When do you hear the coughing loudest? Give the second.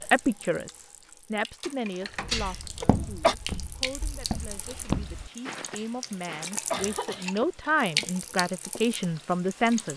3 s.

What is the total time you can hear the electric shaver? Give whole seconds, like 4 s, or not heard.
not heard.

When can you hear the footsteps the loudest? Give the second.
5 s.